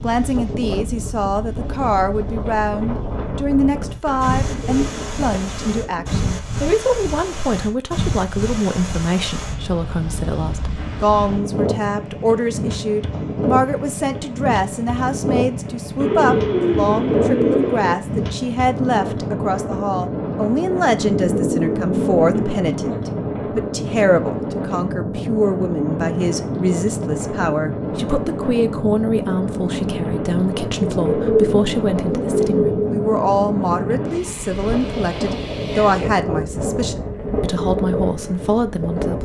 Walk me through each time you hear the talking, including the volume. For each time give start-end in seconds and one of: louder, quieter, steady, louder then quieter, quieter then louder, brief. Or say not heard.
0.0-39.2 steady.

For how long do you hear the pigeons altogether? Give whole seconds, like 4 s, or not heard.
8 s.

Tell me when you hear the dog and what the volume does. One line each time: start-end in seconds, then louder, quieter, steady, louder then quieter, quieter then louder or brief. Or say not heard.
not heard.